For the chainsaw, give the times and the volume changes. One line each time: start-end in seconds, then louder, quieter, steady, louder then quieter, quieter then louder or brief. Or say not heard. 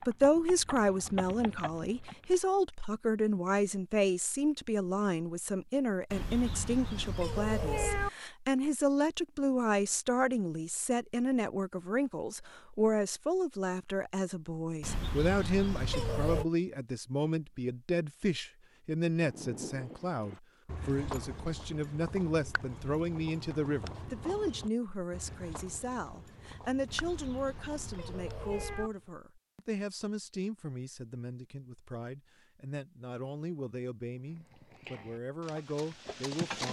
not heard.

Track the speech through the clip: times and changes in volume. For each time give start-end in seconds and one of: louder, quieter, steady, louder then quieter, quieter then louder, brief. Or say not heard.
0.1-36.6 quieter.